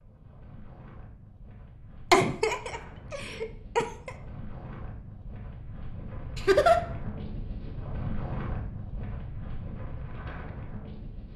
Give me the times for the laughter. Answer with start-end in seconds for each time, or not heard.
2.1-4.1, 6.3-6.8.